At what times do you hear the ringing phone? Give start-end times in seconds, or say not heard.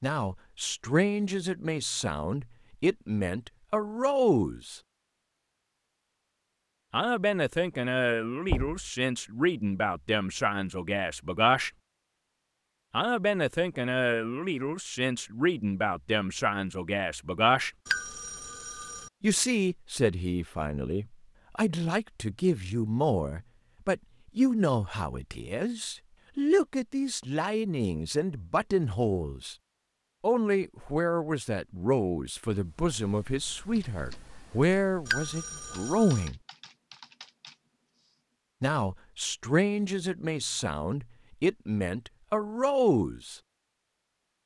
17.9-19.1, 35.0-36.3.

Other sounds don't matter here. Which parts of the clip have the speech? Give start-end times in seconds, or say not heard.
0.0-4.8, 6.9-11.7, 12.9-17.7, 19.2-29.6, 30.2-36.4, 38.6-43.4.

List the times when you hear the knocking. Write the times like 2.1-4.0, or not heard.
8.4-8.9.